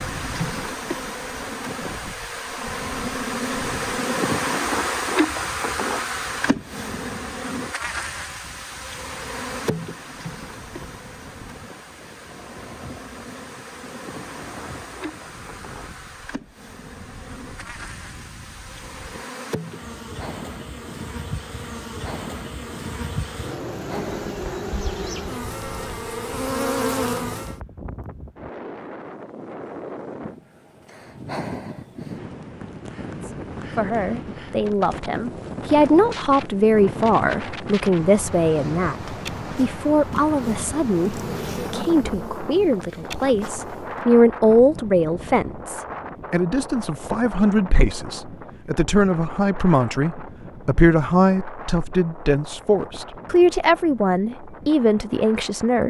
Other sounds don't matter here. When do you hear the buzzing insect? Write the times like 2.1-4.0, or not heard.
0.0-27.6, 39.0-44.0.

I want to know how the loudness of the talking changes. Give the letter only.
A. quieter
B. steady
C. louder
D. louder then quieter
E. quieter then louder
B.